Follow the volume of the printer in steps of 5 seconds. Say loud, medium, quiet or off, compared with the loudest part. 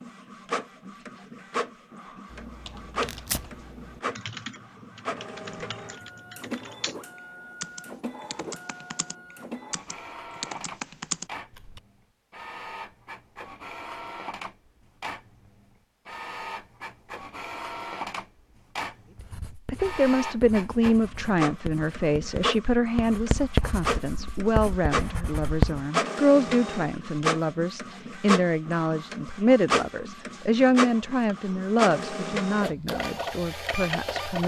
medium, medium, medium, medium, loud, loud, loud.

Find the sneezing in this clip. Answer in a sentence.
You can't hear the sneezing here.